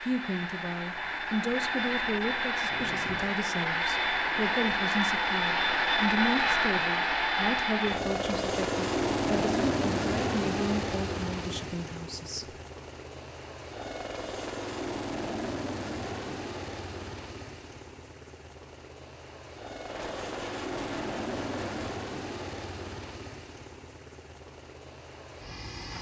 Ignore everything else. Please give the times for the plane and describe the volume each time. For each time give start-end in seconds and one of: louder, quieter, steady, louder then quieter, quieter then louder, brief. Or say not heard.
0.0-25.9 quieter.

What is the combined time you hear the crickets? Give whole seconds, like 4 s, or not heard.
not heard.